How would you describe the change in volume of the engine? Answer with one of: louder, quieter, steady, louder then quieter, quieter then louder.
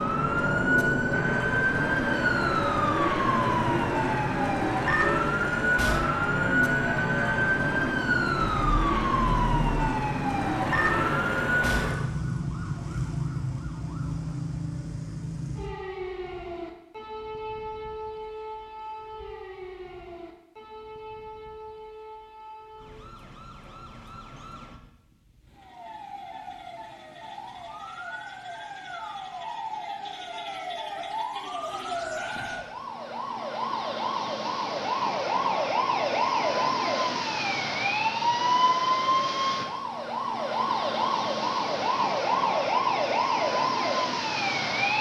steady.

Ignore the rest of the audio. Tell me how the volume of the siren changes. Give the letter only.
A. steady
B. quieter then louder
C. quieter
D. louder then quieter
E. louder
B.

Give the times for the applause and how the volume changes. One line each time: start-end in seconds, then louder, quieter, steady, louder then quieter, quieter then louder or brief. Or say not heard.
not heard.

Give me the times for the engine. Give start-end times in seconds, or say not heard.
0.0-11.9.